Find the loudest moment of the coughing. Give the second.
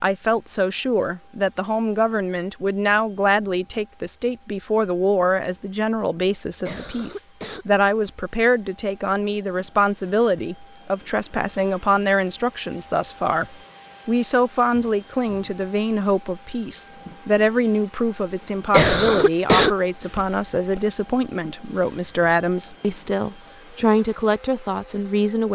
19 s.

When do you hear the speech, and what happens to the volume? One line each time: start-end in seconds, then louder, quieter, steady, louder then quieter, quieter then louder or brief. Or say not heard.
0.0-25.5 steady.